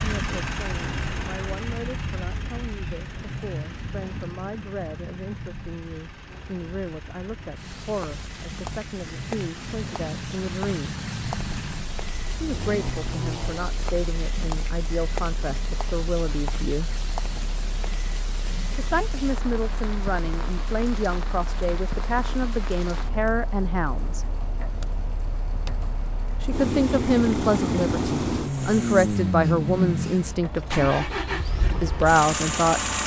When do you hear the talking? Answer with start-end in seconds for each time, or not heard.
0.0-11.0, 12.3-16.9, 18.8-24.2, 26.4-31.1, 31.8-32.8.